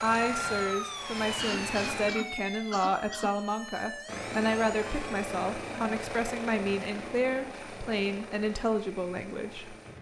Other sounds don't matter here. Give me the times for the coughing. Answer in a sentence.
The coughing can be heard from 1.4 to 3.5 s.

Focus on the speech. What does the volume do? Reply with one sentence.
The volume of the speech stays about the same.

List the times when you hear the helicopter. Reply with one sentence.
You can hear the helicopter from 0.0 to 2.1 s and from 4.0 to 9.9 s.